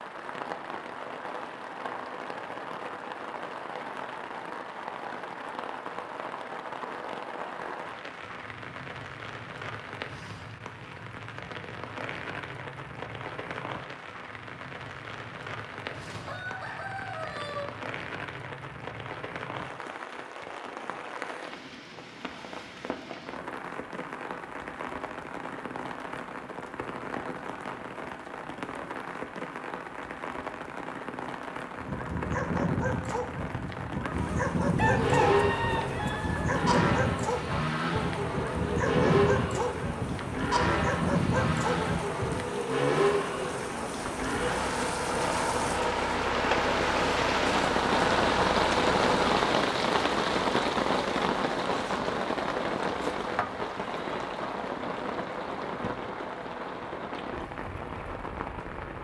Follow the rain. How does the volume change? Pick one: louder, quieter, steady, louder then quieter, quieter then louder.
louder.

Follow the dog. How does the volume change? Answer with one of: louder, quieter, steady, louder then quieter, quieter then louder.
steady.